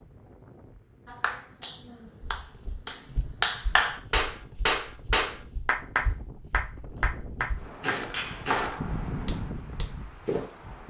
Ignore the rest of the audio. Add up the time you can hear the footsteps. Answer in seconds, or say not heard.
8 s.